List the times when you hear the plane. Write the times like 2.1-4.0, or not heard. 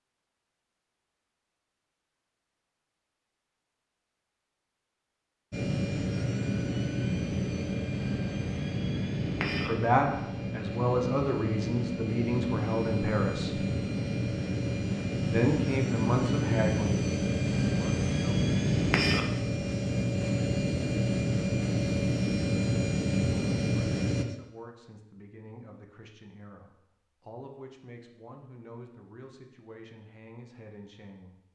5.5-24.2.